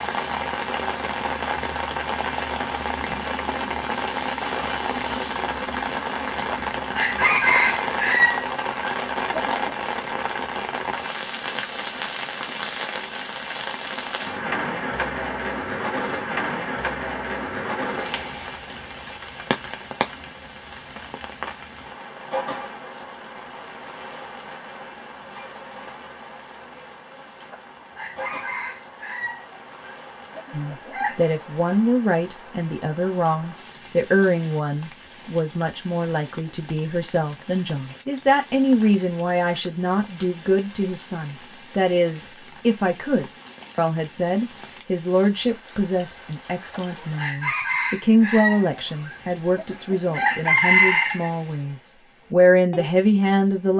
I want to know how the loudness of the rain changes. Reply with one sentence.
The volume of the rain goes down.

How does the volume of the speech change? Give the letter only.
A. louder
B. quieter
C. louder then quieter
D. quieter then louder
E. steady
E.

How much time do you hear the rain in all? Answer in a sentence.
The rain can be heard for 54 seconds in total.